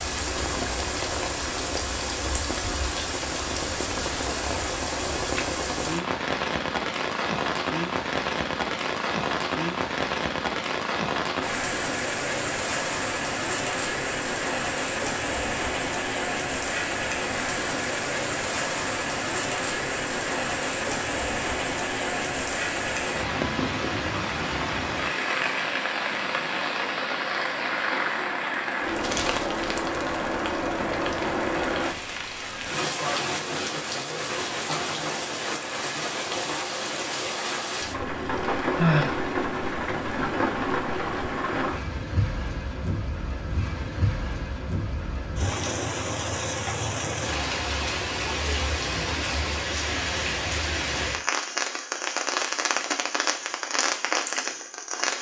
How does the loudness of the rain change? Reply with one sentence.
The volume of the rain stays about the same.